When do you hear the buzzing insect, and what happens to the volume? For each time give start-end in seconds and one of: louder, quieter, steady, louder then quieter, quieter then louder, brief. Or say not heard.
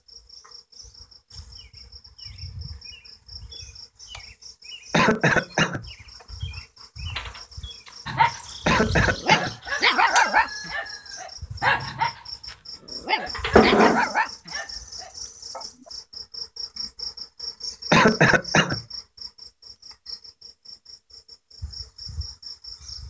0.1-23.0 louder then quieter.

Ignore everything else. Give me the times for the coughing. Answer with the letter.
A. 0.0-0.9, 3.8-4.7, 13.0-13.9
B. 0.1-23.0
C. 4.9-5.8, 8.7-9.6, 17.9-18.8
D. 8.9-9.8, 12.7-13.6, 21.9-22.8
C.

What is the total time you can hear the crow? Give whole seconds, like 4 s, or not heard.
not heard.